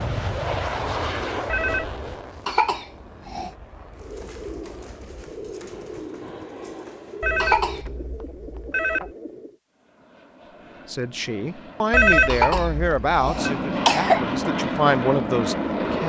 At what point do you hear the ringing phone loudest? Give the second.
12 s.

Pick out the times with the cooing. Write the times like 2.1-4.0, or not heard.
4.0-9.6.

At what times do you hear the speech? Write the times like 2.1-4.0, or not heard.
10.8-16.0.